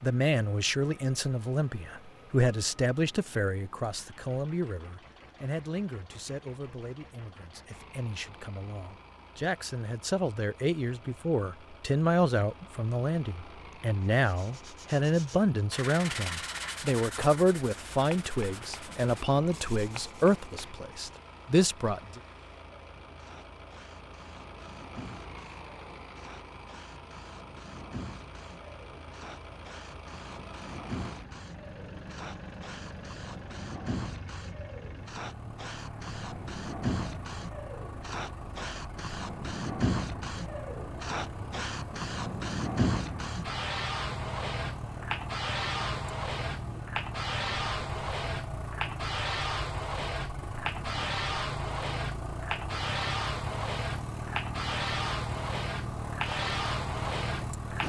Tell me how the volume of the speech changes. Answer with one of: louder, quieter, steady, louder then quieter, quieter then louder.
quieter then louder.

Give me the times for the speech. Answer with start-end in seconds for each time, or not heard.
0.0-22.2.